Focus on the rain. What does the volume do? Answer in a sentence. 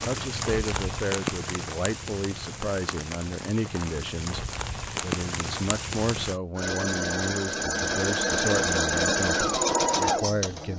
The volume of the rain goes down, then up.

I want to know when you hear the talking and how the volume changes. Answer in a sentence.
The talking can be heard from 0.0 to 10.7 s, at a steady volume.